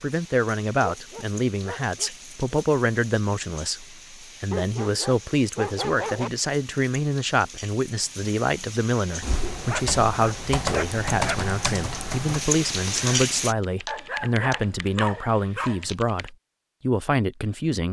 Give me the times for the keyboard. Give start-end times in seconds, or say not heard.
9.2-16.3.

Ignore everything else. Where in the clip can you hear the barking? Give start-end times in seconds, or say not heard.
0.9-2.6, 4.5-6.3, 9.4-11.4, 13.8-15.8.